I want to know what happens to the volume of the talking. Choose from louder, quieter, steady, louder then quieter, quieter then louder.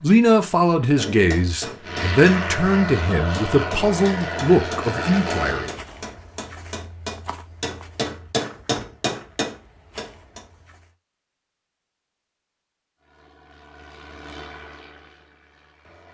steady.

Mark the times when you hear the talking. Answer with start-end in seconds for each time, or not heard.
0.0-5.7.